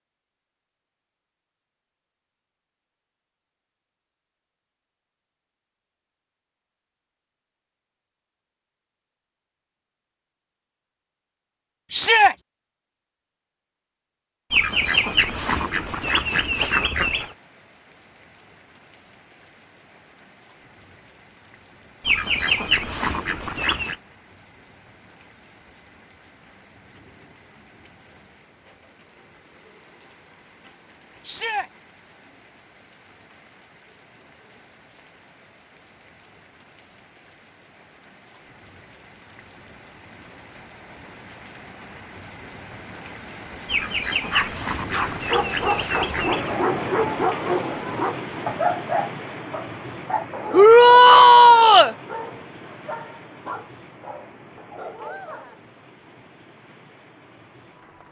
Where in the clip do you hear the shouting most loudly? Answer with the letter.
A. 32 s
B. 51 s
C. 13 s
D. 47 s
B.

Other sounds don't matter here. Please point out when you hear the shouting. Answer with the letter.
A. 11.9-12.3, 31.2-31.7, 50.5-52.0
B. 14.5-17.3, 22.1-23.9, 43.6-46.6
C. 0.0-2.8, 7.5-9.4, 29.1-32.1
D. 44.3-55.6
A.